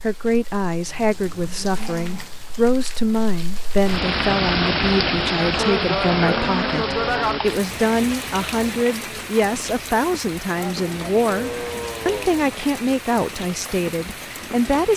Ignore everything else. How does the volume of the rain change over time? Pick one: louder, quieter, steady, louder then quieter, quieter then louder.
louder then quieter.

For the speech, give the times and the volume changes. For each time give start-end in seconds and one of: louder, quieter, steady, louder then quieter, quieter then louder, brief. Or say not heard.
0.0-14.9 steady.